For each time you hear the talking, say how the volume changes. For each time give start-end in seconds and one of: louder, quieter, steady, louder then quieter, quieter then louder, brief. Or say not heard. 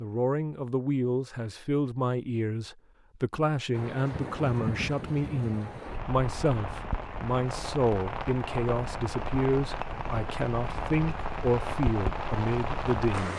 0.0-13.3 steady.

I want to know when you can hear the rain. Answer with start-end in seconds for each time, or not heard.
3.7-13.3.